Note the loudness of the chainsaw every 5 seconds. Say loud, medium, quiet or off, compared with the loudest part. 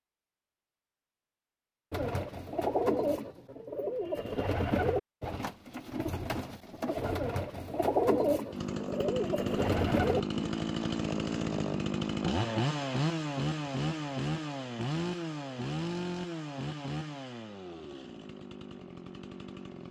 off, loud, loud, medium.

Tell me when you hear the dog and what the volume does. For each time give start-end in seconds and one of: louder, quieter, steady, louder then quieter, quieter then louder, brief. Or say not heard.
not heard.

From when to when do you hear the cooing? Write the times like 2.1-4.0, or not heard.
1.9-10.4.